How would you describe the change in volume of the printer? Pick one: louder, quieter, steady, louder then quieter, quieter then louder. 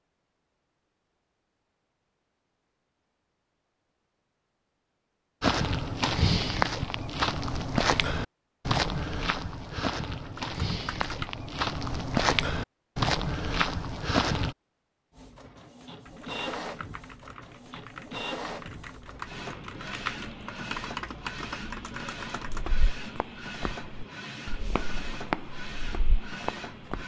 steady.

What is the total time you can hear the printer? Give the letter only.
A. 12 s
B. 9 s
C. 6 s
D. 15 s
A.